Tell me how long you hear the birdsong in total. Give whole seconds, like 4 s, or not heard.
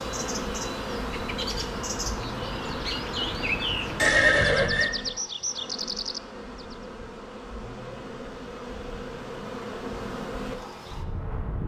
7 s.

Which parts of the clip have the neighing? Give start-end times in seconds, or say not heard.
4.0-4.9.